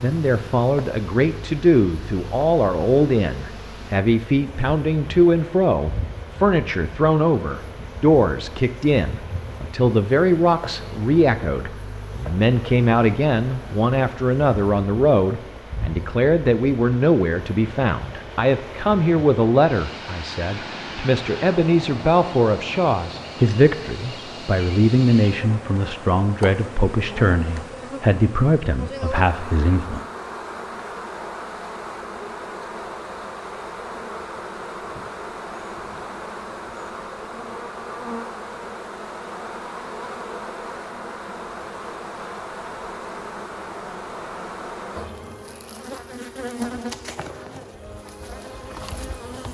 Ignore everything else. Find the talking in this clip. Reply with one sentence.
The talking can be heard from 0.0 to 30.1 s.